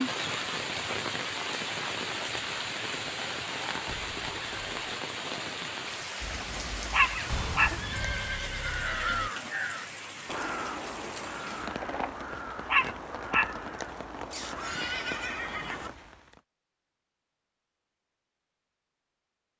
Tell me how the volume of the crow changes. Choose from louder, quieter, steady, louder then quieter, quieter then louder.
louder then quieter.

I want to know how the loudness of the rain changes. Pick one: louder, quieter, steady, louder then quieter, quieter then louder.
quieter.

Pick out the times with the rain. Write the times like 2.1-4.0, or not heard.
0.0-16.4.